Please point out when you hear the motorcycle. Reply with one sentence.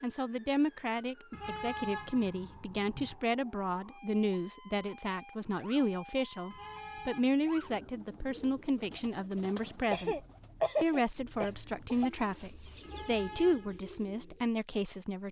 The motorcycle can't be heard in this clip.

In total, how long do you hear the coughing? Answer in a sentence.
You can hear the coughing for 2 seconds altogether.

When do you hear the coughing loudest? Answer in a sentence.
The volume of the coughing peaks at 11 seconds.